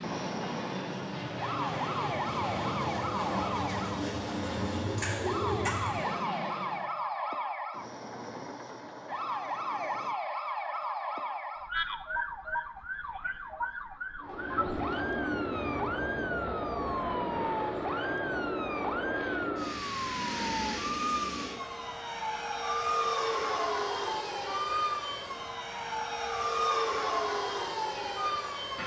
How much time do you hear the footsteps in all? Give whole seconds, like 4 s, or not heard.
not heard.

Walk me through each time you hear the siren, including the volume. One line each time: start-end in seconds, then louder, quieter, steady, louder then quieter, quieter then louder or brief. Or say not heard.
0.0-28.8 steady.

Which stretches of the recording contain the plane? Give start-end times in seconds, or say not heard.
0.0-6.9, 14.2-28.8.